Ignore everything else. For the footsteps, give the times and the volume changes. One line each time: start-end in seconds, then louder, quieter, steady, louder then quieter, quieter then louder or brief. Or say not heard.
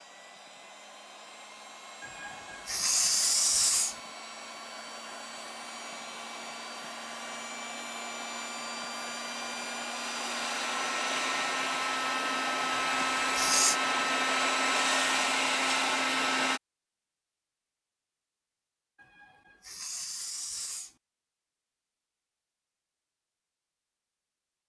not heard.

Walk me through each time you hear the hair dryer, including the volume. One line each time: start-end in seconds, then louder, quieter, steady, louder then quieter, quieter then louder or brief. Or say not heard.
0.0-16.6 louder.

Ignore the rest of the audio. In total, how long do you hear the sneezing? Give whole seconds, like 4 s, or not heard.
5 s.